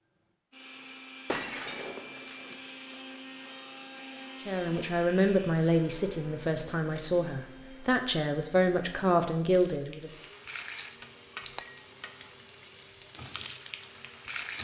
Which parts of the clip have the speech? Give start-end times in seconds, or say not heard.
4.4-10.1.